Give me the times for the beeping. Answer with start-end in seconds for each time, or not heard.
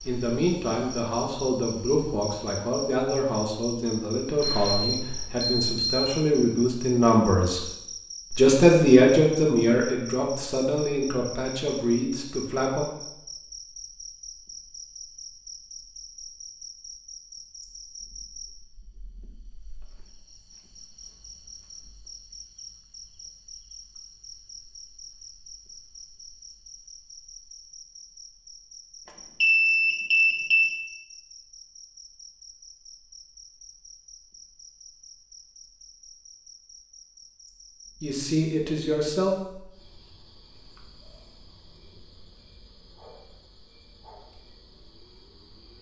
4.4-6.2, 29.4-30.8.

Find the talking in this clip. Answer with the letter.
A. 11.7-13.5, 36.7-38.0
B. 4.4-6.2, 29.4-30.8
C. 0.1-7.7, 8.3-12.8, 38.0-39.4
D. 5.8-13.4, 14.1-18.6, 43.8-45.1
C.